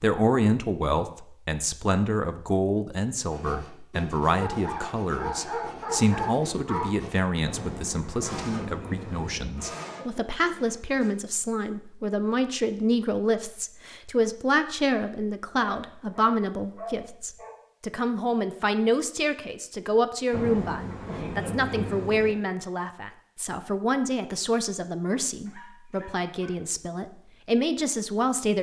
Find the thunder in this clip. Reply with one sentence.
You can hear the thunder from 7.5 to 9.4 s and from 20.3 to 22.4 s.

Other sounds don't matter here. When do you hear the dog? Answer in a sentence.
The dog can be heard from 4.4 to 6.8 s, from 15.6 to 17.5 s and from 25.4 to 26.6 s.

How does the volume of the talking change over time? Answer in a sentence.
The loudness of the talking stays about the same.